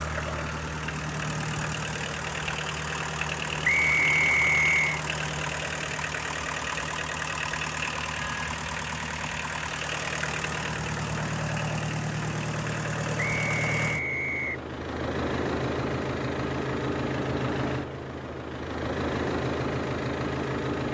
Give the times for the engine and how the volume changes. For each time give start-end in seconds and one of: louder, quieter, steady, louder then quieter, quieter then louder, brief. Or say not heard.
0.0-20.8 steady.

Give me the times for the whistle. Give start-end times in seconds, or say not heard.
3.6-5.0, 13.2-14.7.